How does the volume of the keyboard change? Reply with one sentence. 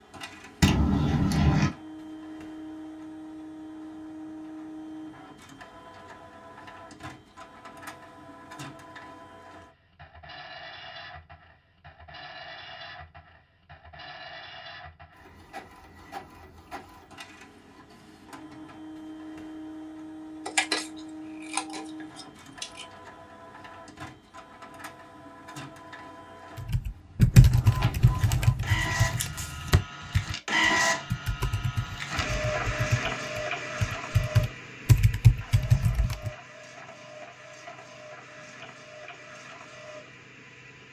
The volume of the keyboard goes down, then up.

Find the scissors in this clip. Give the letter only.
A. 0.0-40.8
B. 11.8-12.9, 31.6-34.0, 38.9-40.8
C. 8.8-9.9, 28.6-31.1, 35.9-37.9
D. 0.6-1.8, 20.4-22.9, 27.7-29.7
D.